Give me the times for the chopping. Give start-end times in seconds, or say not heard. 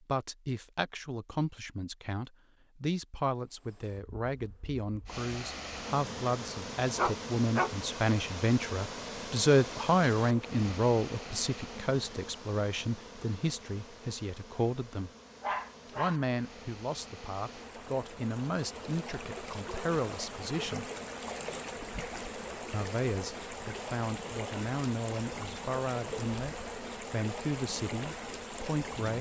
not heard.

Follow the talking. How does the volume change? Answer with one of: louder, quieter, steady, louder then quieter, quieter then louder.
louder then quieter.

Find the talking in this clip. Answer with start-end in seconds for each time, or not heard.
0.1-15.1, 15.9-20.9, 22.7-29.1.